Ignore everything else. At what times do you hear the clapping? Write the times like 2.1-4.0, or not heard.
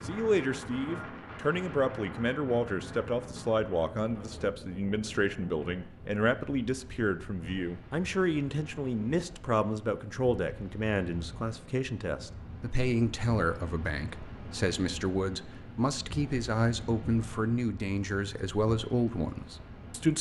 not heard.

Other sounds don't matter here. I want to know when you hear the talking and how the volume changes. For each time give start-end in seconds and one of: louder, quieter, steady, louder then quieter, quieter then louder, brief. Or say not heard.
0.0-20.1 steady.